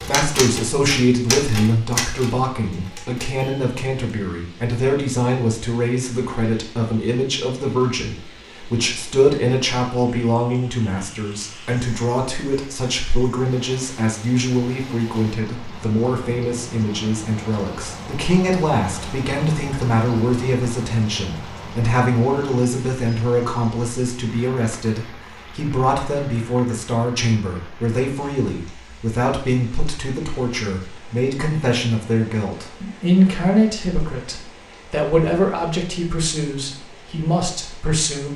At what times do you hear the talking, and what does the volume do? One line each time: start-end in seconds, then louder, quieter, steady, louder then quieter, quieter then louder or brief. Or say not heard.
0.1-38.3 steady.